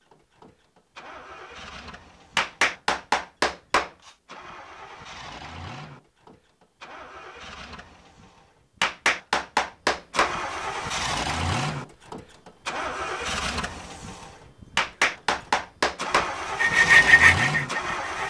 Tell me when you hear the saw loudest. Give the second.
17 s.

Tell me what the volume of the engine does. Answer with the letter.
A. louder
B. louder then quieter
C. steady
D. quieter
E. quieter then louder
A.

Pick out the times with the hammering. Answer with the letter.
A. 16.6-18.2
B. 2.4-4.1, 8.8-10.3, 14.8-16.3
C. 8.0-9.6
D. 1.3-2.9
B.